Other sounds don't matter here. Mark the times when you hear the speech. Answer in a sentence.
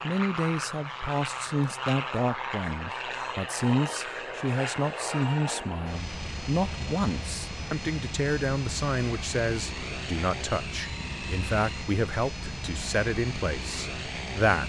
You can hear the speech from 0.0 to 14.6 s.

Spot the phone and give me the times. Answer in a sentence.
The phone can't be heard in this clip.